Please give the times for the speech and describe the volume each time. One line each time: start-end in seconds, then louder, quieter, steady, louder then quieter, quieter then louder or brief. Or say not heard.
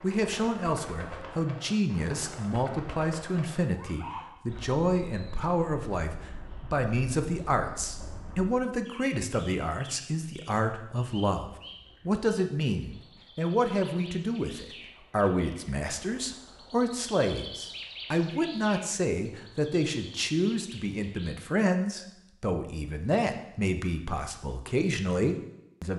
0.0-25.9 steady.